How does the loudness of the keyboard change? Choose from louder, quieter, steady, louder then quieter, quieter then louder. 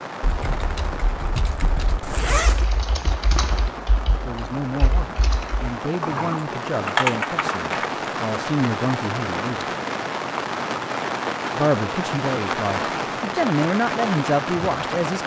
louder.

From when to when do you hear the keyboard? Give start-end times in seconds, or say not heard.
0.2-7.9.